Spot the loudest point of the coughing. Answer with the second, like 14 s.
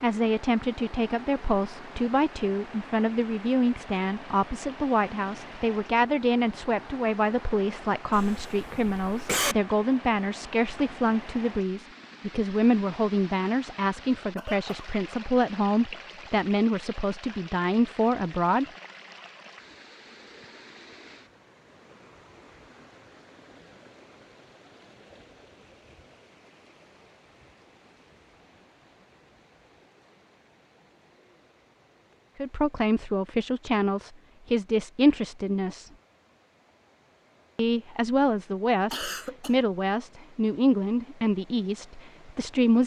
9 s.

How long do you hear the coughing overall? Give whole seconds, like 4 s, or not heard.
3 s.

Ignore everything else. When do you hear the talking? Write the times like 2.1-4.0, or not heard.
0.0-18.6, 32.4-35.9, 37.5-42.8.